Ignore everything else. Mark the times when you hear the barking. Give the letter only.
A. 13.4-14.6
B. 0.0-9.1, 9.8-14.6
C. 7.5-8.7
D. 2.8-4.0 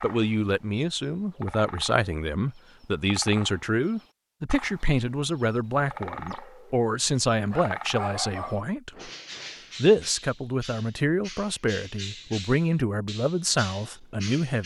C.